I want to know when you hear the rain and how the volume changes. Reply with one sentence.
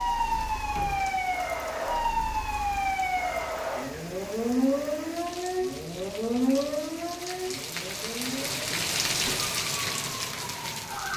The rain can be heard from 0.0 to 11.1 s, getting louder.